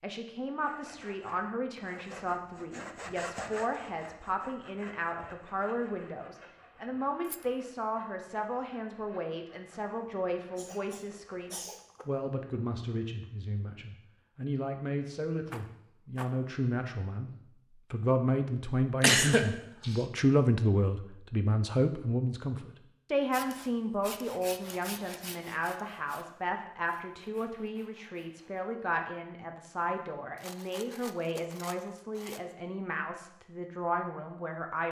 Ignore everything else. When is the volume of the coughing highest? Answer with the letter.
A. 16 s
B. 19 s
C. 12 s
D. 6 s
B.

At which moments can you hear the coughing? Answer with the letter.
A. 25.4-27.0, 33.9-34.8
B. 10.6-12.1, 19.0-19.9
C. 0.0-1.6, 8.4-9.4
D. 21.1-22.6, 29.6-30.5
B.